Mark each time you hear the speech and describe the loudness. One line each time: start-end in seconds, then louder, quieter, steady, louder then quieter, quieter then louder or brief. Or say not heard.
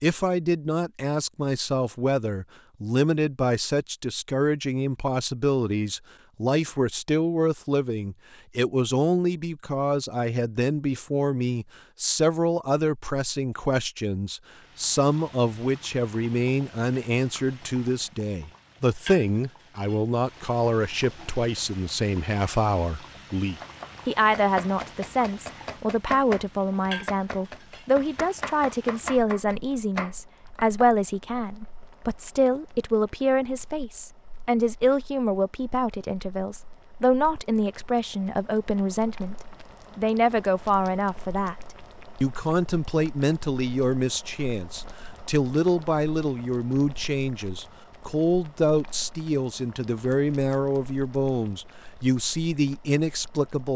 0.0-39.4 steady
40.0-41.5 brief
42.2-53.7 steady.